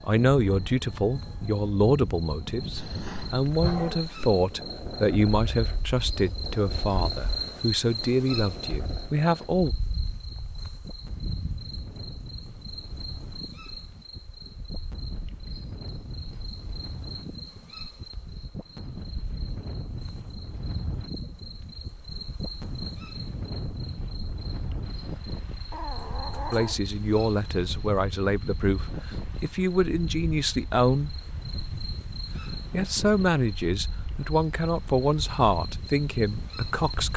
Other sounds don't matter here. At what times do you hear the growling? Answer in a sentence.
The growling can be heard from 2.8 to 4.2 s and from 25.7 to 26.8 s.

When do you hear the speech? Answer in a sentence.
The speech can be heard from 0.0 to 9.8 s, from 26.5 to 31.1 s and from 32.7 to 37.1 s.